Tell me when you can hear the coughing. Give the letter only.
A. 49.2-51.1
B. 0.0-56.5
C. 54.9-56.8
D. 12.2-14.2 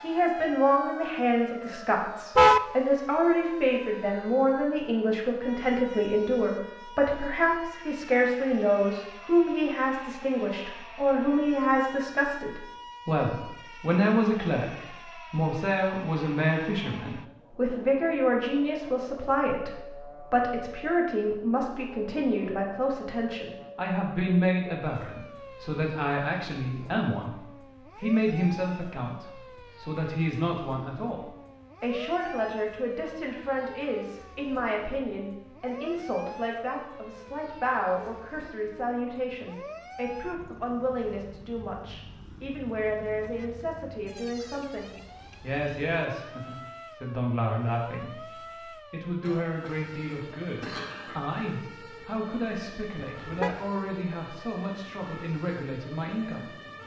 A.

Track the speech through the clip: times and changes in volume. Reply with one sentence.
You can hear the speech from 0.0 to 56.5 s, getting quieter.